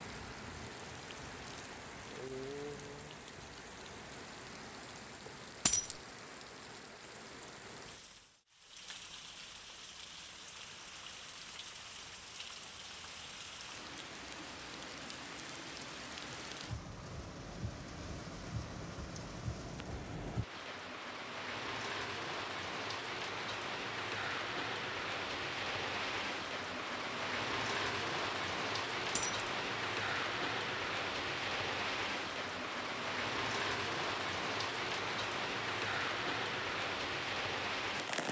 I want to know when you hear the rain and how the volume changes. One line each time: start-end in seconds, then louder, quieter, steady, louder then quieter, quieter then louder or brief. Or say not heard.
0.0-38.2 louder.